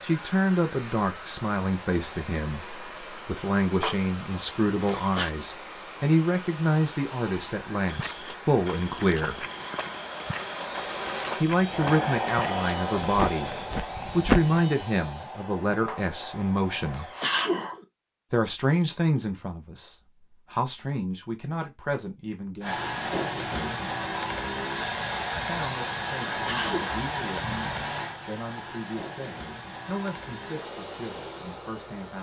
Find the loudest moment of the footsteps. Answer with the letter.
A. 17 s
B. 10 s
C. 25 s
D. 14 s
D.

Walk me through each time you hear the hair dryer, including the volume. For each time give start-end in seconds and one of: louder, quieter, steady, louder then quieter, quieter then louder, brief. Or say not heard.
0.0-17.4 louder then quieter
22.6-32.1 quieter.